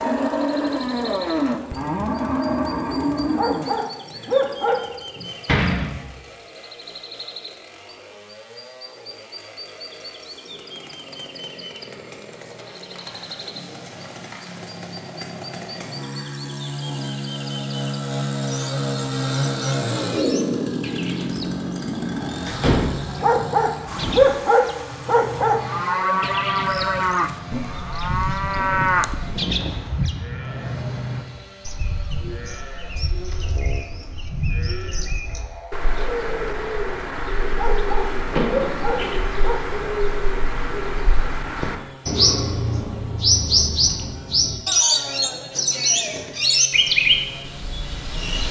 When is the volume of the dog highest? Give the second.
24 s.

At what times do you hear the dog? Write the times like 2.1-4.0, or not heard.
3.2-4.8, 23.1-25.6, 37.5-39.6.